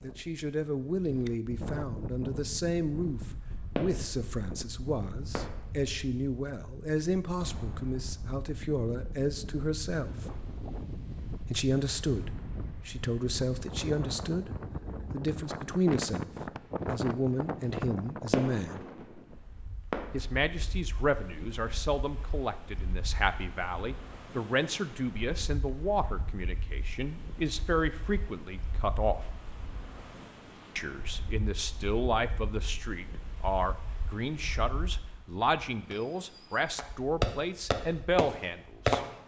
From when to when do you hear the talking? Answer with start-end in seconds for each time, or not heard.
0.0-10.4, 11.5-16.3, 16.9-18.8, 20.1-29.2, 30.8-39.0.